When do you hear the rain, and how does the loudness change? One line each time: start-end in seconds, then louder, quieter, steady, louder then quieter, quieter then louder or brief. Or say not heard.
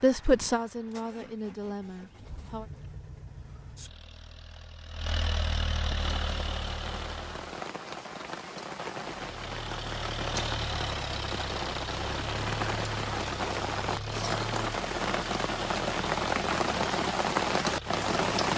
6.0-18.5 louder.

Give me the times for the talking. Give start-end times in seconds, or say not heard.
0.0-2.7.